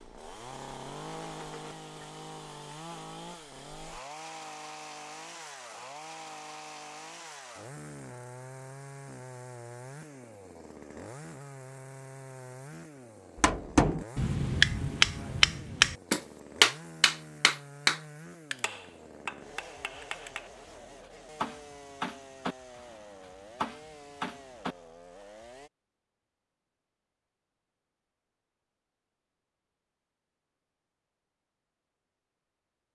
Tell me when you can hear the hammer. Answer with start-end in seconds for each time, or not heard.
13.4-24.8.